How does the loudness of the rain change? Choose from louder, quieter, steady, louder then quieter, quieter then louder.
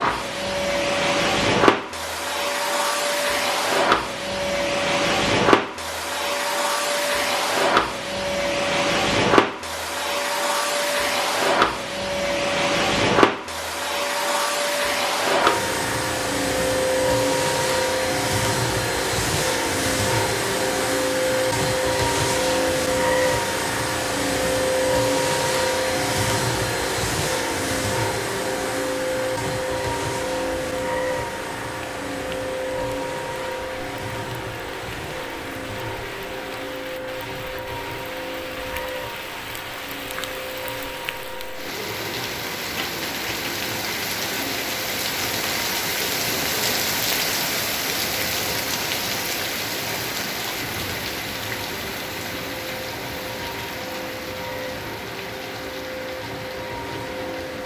louder then quieter.